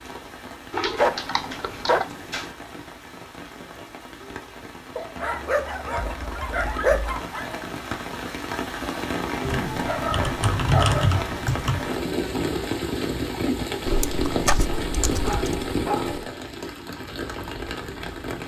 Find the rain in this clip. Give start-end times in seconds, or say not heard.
0.0-18.4.